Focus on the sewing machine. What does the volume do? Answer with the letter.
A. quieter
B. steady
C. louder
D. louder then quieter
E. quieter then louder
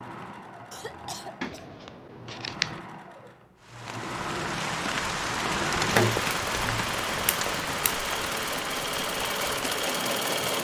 C.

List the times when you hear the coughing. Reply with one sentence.
You can hear the coughing from 0.7 to 1.6 s.